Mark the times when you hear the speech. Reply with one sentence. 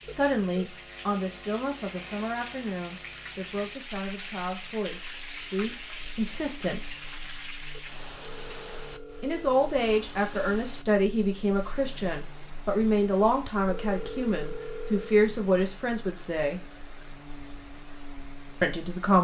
You can hear the speech from 0.0 to 6.8 s, from 9.2 to 16.6 s and from 18.6 to 19.1 s.